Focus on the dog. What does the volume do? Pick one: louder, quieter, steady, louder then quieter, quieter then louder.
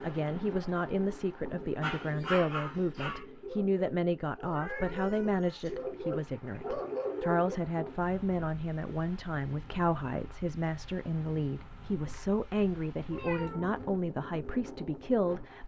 quieter then louder.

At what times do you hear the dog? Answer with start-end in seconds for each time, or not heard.
1.8-7.5.